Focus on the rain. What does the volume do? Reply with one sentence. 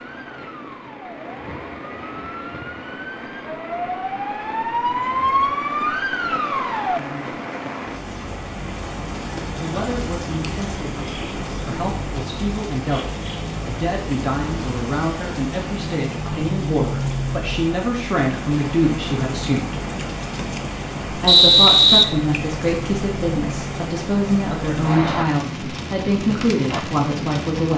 The loudness of the rain goes up.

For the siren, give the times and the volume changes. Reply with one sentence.
You can hear the siren from 0.0 to 7.0 s, getting louder.